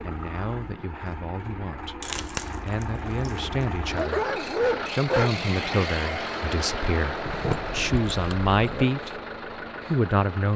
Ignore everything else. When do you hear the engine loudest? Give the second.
6 s.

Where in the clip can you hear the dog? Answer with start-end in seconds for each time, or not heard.
3.9-5.3.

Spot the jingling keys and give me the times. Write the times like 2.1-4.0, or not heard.
2.0-3.6, 7.2-8.8.